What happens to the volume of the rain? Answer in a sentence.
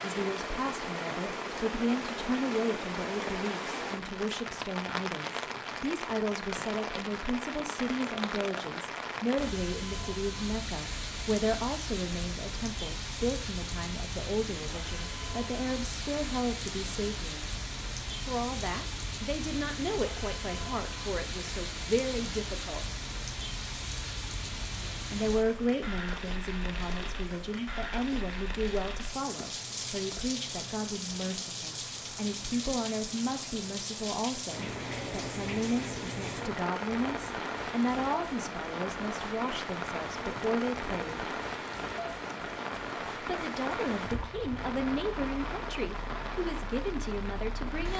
The volume of the rain stays about the same.